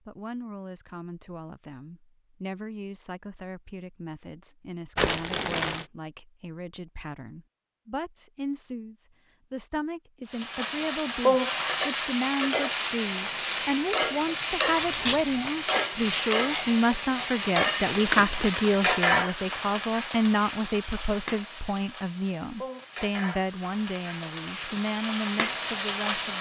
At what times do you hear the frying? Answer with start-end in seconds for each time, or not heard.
10.3-26.3.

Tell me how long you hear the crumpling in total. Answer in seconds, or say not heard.
3 s.